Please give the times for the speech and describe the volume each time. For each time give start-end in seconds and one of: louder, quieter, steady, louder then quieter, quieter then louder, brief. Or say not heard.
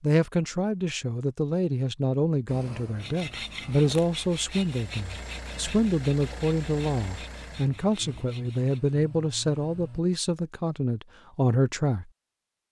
0.0-12.1 steady.